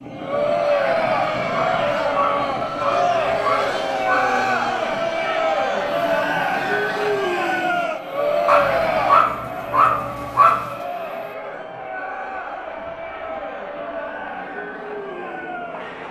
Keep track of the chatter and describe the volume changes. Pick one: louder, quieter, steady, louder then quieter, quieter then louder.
quieter.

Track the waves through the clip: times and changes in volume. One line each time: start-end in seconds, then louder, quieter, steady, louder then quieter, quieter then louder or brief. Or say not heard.
not heard.